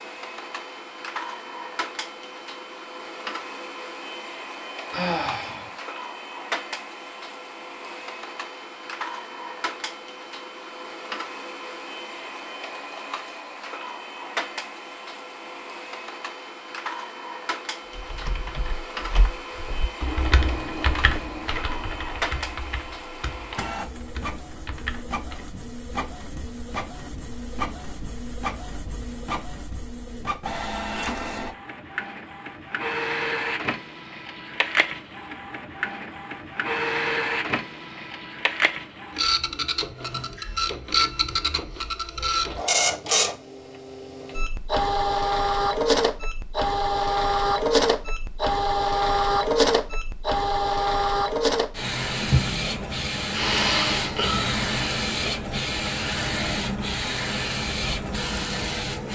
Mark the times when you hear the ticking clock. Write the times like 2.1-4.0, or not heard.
not heard.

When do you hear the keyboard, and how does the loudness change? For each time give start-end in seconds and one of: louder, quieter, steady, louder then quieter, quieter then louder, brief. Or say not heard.
17.9-25.5 louder then quieter.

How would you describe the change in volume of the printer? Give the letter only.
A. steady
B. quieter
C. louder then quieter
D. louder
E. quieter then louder
D.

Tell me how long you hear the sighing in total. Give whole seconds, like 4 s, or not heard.
2 s.